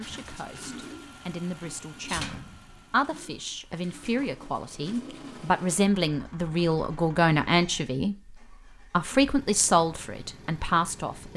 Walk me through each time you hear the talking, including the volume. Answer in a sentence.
The talking can be heard from 0.0 to 8.2 s, getting louder; and briefly from 8.9 to 11.3 s.